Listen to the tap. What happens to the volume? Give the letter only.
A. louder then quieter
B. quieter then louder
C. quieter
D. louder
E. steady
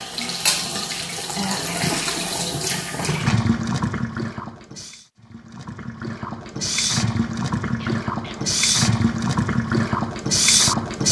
B.